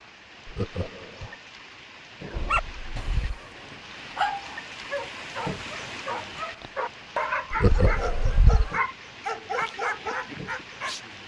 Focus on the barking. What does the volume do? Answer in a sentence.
The loudness of the barking goes up.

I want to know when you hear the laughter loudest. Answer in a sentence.
The volume of the laughter peaks at 8 seconds.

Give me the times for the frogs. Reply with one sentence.
You can't hear the frogs here.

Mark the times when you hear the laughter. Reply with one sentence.
The laughter can be heard from 0.5 to 1.4 s and from 7.5 to 8.4 s.